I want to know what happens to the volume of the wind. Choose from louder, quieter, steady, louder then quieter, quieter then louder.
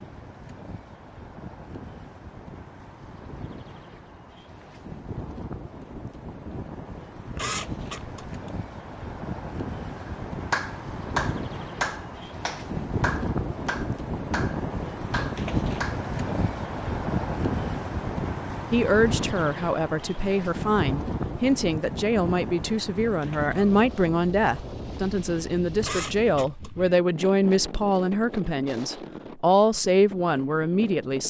louder then quieter.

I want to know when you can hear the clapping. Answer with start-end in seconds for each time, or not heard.
10.5-16.1.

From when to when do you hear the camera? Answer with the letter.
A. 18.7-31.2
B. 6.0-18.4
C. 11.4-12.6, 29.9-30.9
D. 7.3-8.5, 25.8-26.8
D.